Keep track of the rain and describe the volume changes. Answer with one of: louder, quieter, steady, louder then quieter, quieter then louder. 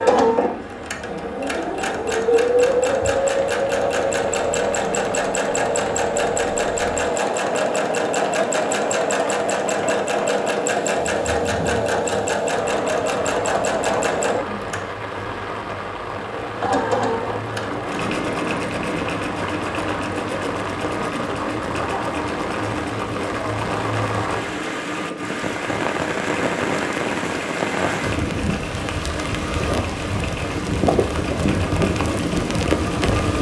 louder.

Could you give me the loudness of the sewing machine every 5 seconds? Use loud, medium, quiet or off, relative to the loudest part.
loud, loud, loud, medium, medium, medium, medium.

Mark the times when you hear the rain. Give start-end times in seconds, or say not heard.
0.0-33.3.